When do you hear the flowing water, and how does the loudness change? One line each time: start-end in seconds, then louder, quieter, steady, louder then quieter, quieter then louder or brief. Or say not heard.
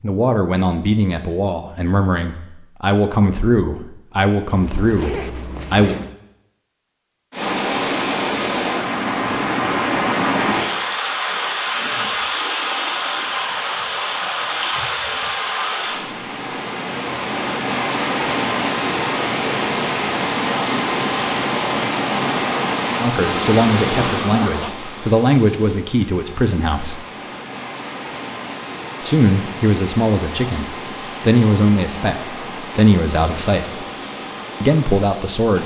7.3-35.6 quieter.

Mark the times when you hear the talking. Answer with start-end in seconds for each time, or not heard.
0.0-6.0, 23.0-27.1, 29.0-33.7, 34.6-35.6.